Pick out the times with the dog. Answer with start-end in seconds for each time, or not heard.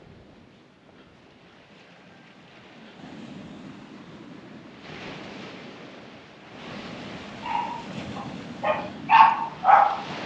7.4-10.1.